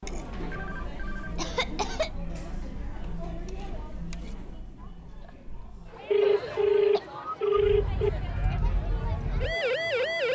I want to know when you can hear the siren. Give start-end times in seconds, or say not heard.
7.2-10.3.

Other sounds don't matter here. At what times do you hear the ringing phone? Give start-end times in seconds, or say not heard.
0.4-1.4, 6.1-8.1.